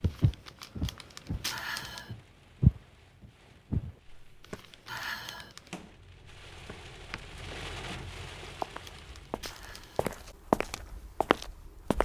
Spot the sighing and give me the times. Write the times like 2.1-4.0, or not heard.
1.4-2.1, 4.8-5.5, 9.4-10.0.